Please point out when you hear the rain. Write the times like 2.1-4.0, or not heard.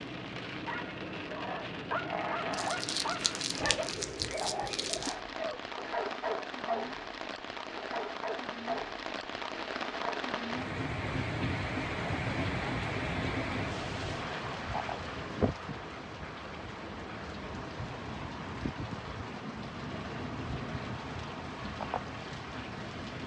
0.0-23.2.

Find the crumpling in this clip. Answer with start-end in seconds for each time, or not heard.
2.5-5.2.